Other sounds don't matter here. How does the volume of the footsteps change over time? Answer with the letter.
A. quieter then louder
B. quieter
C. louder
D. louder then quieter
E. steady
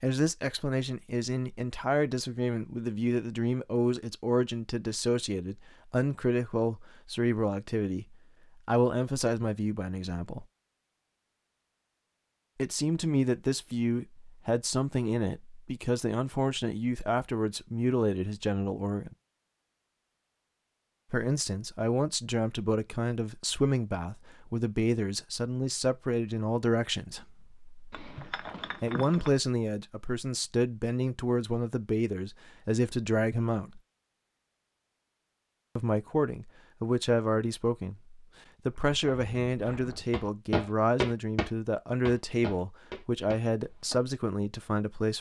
D.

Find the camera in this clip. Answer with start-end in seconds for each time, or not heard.
not heard.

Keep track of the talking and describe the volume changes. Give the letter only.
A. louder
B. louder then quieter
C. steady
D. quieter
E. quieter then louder
C.